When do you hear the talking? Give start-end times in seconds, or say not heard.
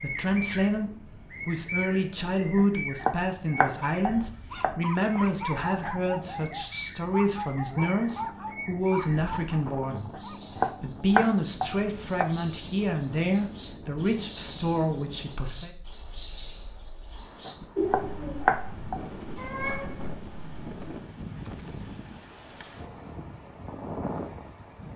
0.0-15.7.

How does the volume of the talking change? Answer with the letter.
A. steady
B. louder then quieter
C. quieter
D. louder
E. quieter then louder
A.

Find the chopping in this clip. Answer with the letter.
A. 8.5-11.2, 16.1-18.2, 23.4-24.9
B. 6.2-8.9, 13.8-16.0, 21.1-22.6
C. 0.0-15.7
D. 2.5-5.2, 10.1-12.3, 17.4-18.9
D.